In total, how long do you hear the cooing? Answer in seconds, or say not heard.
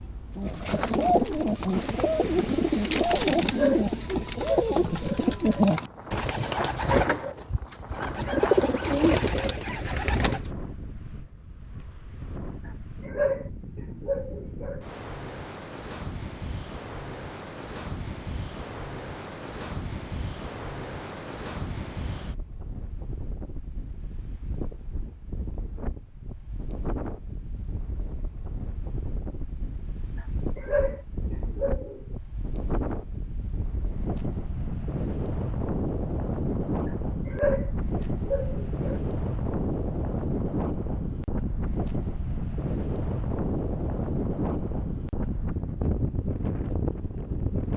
10 s.